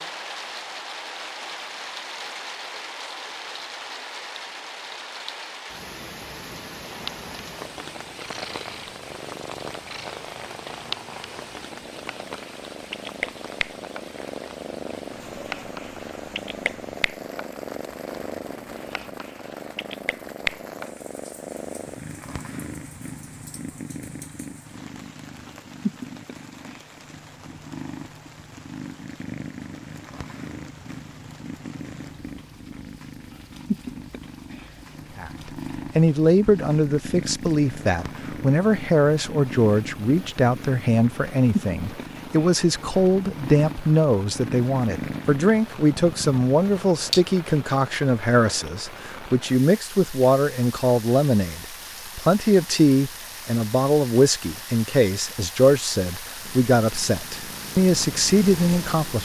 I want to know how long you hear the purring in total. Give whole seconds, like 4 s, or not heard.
43 s.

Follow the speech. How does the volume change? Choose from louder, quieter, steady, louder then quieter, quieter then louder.
steady.